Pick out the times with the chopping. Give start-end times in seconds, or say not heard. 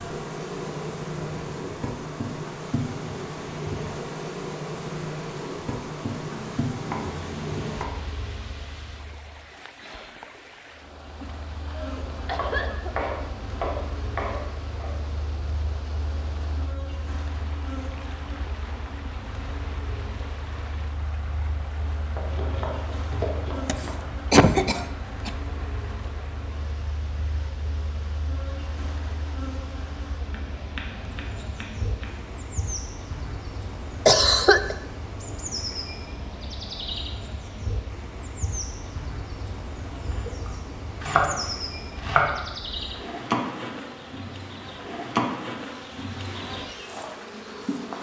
6.3-7.9, 12.3-14.9, 22.1-24.1, 30.3-32.2, 40.5-42.3.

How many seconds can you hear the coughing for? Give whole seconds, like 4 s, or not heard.
4 s.